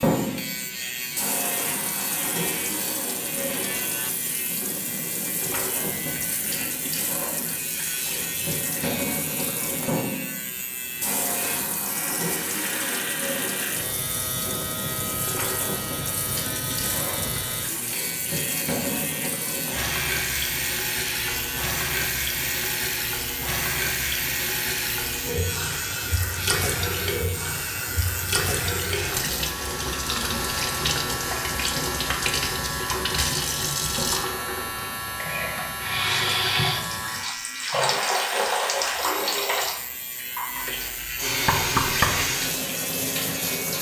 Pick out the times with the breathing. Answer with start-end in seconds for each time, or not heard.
not heard.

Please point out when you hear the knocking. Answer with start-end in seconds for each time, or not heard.
41.5-42.3.